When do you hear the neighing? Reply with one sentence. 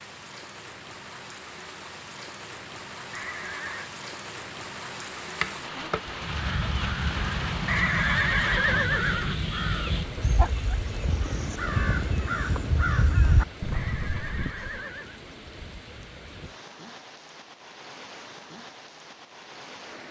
The neighing can be heard from 3.1 to 3.9 s, from 7.7 to 9.4 s and from 13.7 to 15.2 s.